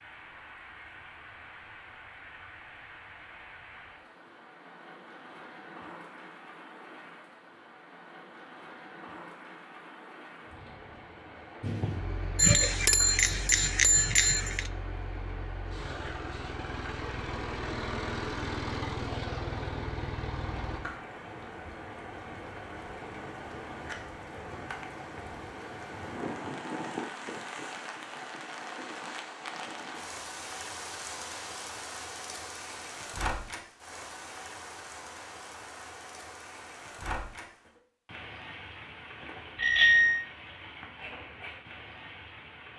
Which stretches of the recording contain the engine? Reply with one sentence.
The engine can be heard from 11.6 to 20.8 s.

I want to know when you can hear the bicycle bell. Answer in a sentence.
The bicycle bell can be heard from 12.3 to 14.6 s and from 39.5 to 40.2 s.